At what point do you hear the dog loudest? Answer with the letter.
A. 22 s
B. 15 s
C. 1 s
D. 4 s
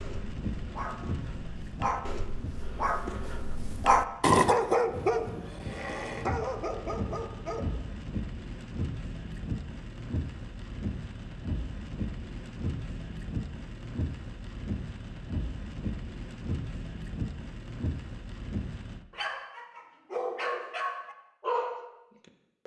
D.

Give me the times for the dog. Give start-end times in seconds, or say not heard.
0.0-7.7, 19.1-22.6.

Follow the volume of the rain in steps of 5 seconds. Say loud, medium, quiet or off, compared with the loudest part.
loud, loud, loud, loud, off.